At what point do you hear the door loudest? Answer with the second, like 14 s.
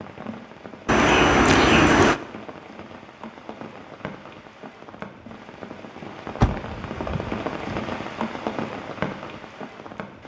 2 s.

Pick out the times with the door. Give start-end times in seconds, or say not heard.
0.8-2.2, 6.3-7.8.